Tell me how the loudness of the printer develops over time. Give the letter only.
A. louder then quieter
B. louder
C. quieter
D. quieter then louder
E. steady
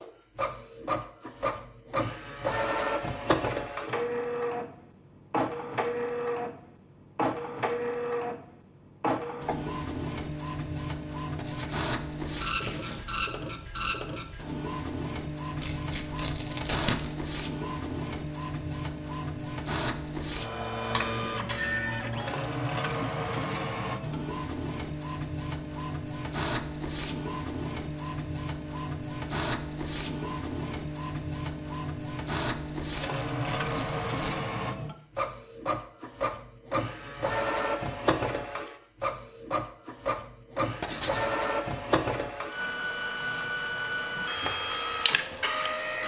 E.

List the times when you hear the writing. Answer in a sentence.
You can hear the writing from 11.3 to 11.8 s and from 40.8 to 41.4 s.